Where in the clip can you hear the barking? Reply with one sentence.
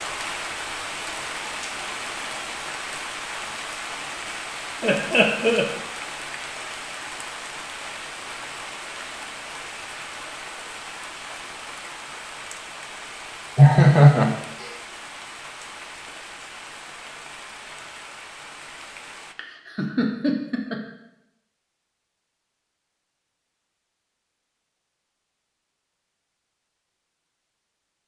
You can't hear the barking here.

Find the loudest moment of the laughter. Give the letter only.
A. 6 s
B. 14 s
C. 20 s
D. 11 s
B.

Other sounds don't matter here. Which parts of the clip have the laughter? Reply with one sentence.
The laughter can be heard from 4.8 to 5.7 s, from 13.6 to 14.7 s and from 19.4 to 20.8 s.